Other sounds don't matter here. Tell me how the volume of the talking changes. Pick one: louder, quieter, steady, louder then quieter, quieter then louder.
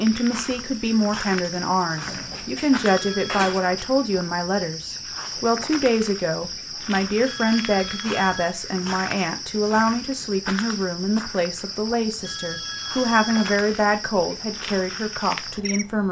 steady.